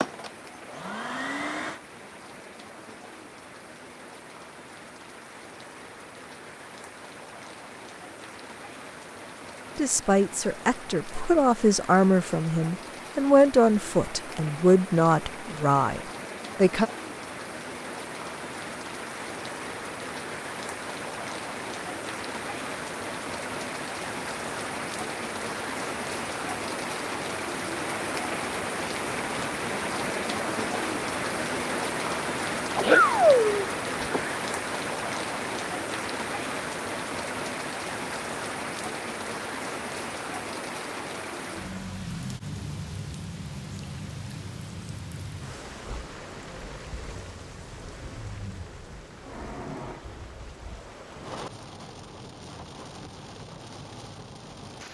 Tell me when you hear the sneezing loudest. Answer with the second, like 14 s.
33 s.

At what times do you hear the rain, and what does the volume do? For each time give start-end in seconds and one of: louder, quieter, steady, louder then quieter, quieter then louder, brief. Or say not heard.
0.0-54.8 louder then quieter.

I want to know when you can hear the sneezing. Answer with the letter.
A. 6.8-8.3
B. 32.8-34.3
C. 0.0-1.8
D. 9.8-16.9
B.